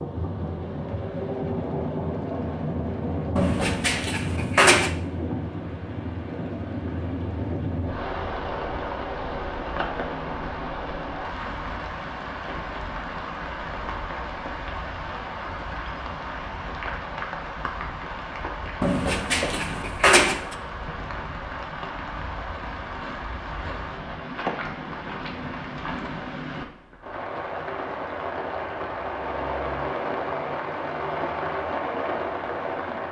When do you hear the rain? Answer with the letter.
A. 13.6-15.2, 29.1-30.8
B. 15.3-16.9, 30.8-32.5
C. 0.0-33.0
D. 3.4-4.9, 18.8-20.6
C.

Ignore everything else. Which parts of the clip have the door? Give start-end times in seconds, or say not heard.
3.4-4.9, 18.8-20.6.